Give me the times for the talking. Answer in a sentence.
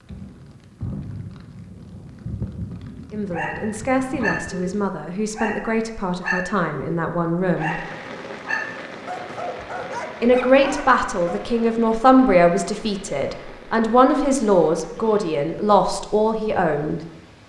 The talking can be heard from 3.1 to 7.8 s and from 10.2 to 17.0 s.